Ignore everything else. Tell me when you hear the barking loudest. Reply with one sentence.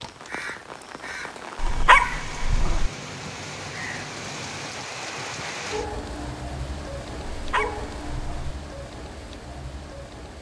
The loudest moment of the barking is at 2 seconds.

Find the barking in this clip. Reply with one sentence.
You can hear the barking from 1.6 to 2.9 s and from 7.3 to 8.6 s.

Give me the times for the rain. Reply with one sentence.
You can hear the rain from 0.0 to 10.3 s.